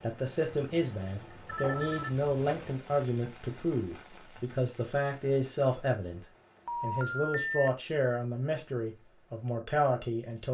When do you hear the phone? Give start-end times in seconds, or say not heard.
1.4-2.7, 6.7-7.7.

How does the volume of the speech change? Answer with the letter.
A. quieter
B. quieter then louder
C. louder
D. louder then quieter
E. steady
E.